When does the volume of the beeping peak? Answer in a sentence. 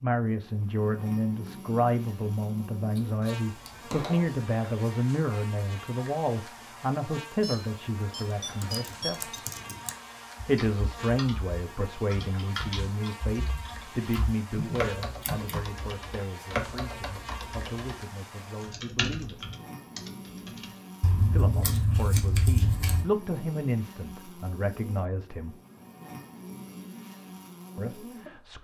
The volume of the beeping peaks at 9 seconds.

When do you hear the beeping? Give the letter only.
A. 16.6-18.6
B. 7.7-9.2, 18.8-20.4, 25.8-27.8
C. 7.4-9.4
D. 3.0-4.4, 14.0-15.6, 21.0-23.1
C.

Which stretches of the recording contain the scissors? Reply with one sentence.
The scissors can be heard from 3.0 to 4.4 s, from 14.0 to 15.6 s and from 21.0 to 23.1 s.